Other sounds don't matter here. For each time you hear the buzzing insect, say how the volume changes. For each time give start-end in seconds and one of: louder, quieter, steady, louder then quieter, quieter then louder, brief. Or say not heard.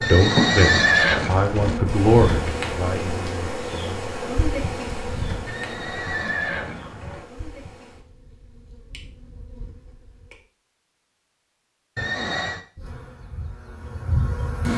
0.0-10.4 quieter
12.8-14.7 brief.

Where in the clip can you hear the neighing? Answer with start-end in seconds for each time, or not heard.
0.0-1.8, 5.5-7.2, 11.9-12.6.